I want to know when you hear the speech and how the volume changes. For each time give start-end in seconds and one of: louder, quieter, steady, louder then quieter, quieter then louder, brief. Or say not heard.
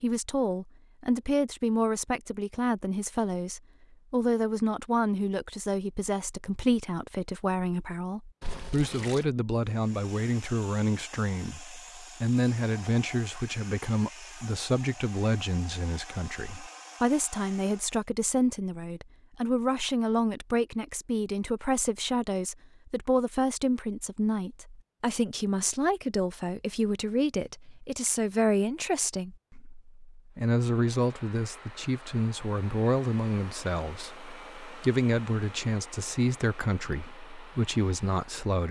0.0-38.6 steady.